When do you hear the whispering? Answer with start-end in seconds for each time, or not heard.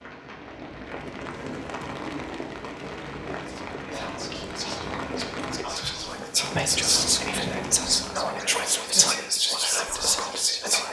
3.5-10.8.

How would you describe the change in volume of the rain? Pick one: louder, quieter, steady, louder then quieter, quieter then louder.
steady.